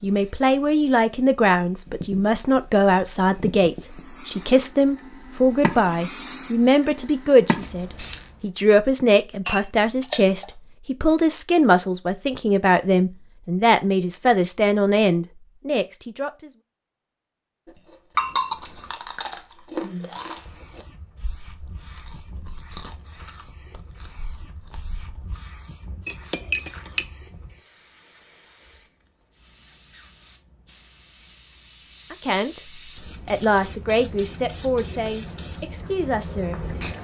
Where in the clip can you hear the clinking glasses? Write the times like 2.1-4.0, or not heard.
9.4-10.6, 18.1-18.9, 26.1-27.1.